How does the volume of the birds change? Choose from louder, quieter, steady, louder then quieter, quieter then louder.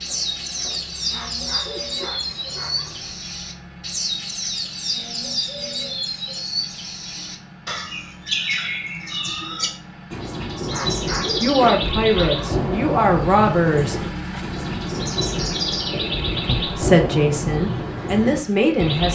steady.